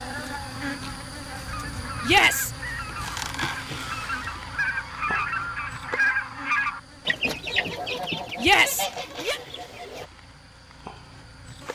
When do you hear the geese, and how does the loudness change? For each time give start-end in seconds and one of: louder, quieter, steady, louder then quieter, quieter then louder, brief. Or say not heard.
1.4-10.1 louder then quieter.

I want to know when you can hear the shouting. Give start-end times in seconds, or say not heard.
2.0-2.5, 8.3-9.4.